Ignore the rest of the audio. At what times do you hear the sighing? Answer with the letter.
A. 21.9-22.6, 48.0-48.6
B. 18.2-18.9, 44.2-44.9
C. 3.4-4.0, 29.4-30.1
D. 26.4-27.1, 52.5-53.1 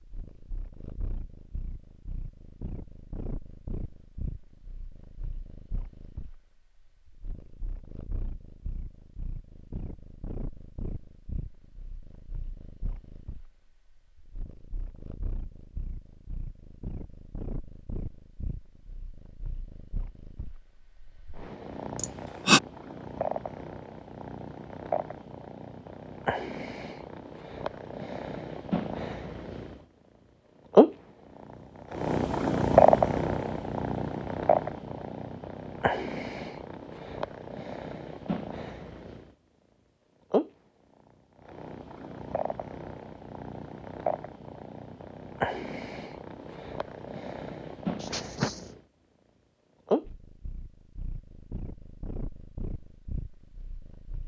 A.